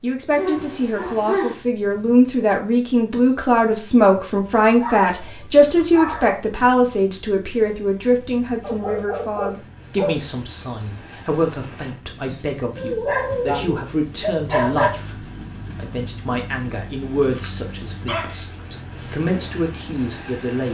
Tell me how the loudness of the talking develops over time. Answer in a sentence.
The loudness of the talking goes down.